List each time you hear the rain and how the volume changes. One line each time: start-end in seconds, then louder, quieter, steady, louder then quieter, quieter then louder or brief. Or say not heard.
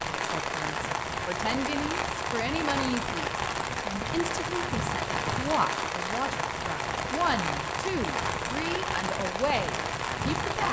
0.0-10.6 steady.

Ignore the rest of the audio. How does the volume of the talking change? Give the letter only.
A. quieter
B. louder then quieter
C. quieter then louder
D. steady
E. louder
D.